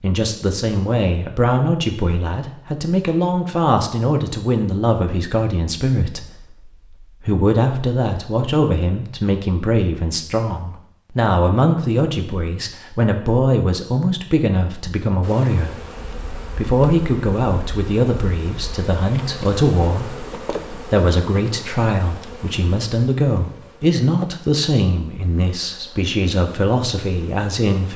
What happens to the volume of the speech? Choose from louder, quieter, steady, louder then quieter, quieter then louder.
steady.